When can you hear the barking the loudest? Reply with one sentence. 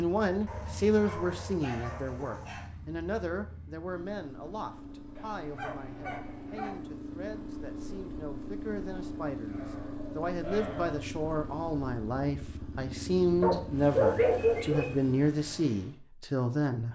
The volume of the barking peaks at 14 seconds.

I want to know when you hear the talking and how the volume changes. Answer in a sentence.
You can hear the talking from 0.0 to 16.9 s, getting quieter then louder.